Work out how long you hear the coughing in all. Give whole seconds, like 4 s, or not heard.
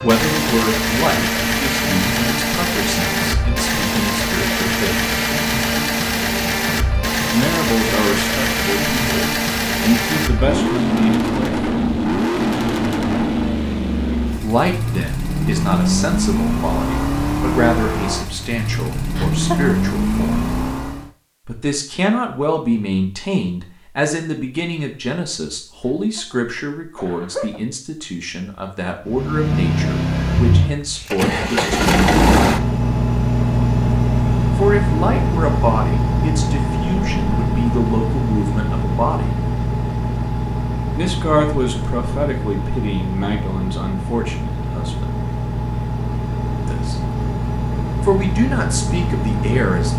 2 s.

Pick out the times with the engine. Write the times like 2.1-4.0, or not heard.
0.0-21.1, 29.1-49.9.